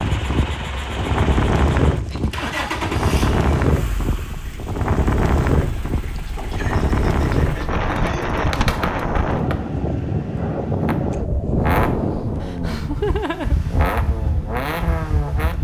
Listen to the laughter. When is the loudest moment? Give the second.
13 s.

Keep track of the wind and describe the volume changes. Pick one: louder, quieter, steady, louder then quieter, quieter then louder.
quieter.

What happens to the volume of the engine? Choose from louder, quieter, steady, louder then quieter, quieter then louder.
quieter then louder.